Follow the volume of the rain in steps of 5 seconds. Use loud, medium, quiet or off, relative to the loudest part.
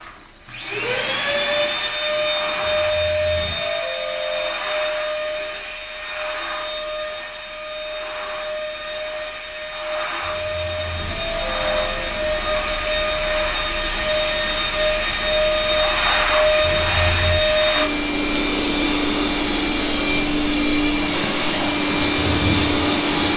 quiet, quiet, loud, loud, loud.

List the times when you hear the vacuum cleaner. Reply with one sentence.
The vacuum cleaner can be heard from 0.0 to 23.3 s.